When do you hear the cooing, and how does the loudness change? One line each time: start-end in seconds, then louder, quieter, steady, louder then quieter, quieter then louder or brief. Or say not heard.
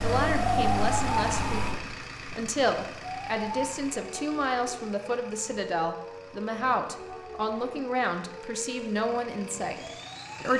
not heard.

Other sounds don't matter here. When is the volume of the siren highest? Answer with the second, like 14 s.
1 s.